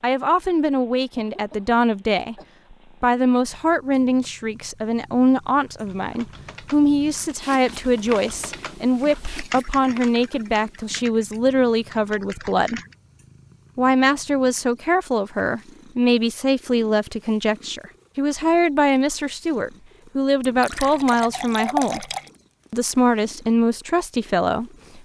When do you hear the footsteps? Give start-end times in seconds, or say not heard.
not heard.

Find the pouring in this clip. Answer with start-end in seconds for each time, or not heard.
20.4-22.3.